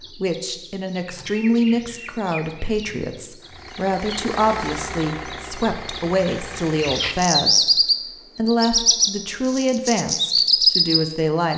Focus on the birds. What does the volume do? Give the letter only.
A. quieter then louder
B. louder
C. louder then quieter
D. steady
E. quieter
B.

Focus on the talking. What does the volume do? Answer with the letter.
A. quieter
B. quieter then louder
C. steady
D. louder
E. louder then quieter
C.